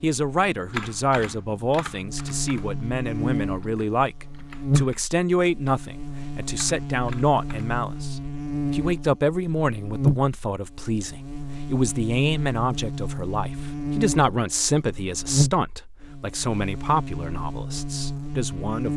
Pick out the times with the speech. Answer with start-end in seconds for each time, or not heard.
0.0-18.9.